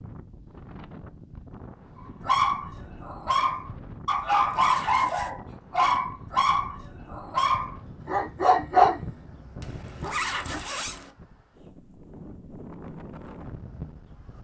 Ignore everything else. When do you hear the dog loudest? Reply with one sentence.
The loudest moment of the dog is at 9 seconds.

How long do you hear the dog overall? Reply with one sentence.
The dog can be heard for 8 seconds in total.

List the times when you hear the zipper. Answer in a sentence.
You can hear the zipper from 4.1 to 5.3 s and from 9.6 to 11.1 s.